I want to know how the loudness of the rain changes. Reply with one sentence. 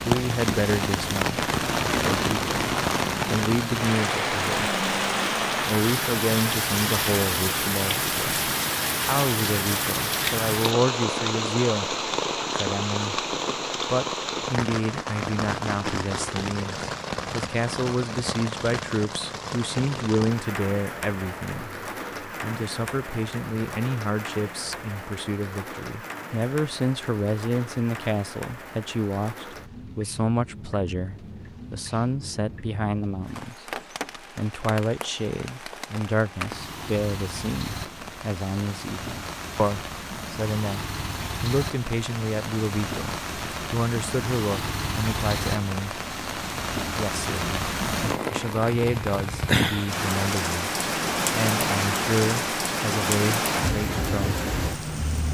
The volume of the rain goes down, then up.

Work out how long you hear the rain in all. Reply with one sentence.
The rain can be heard for 55 seconds in total.